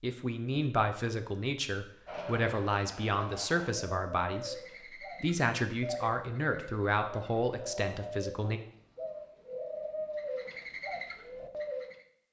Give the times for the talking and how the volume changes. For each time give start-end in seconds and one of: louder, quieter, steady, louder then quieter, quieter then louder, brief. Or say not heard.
0.0-8.6 steady.